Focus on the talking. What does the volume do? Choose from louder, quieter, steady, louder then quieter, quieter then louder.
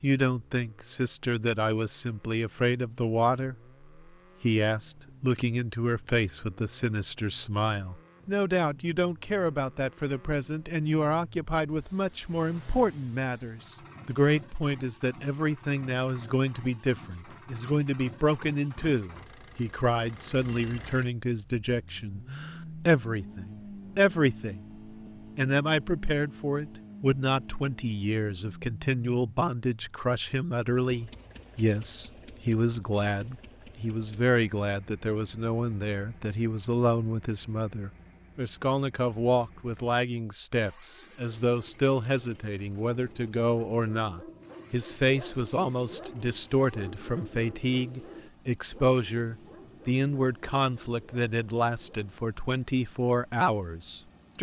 steady.